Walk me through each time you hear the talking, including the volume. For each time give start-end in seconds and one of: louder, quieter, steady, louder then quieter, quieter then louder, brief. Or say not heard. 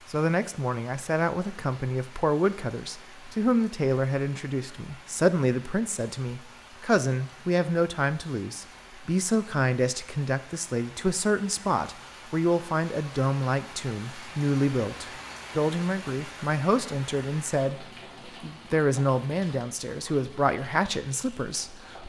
0.1-22.0 steady.